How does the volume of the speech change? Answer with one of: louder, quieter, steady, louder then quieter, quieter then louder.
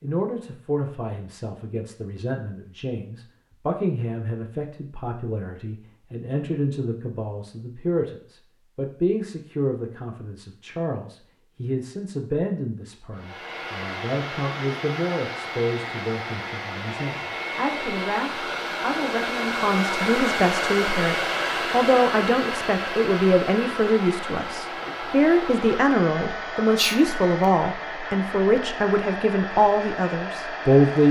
louder.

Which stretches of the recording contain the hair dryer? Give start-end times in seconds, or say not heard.
13.2-31.0.